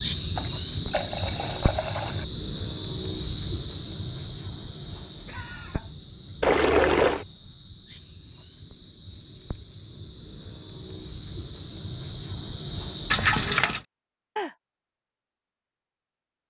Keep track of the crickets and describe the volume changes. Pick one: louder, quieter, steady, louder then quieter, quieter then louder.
quieter then louder.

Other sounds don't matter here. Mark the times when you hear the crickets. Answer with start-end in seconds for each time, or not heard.
0.0-13.6.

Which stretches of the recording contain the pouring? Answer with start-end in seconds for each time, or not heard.
0.3-2.2, 6.4-7.2, 13.1-13.8.